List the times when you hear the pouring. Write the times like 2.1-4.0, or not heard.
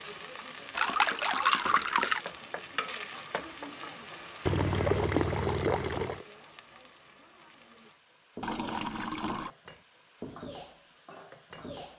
0.8-2.2, 4.5-6.2, 8.4-9.5.